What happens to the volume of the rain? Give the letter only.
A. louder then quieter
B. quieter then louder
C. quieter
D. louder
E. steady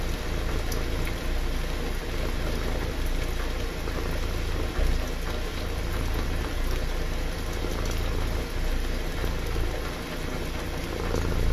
E.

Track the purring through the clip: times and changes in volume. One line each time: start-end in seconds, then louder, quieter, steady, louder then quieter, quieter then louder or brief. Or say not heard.
0.0-11.4 steady.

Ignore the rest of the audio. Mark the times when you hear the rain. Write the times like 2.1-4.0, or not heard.
0.0-11.4.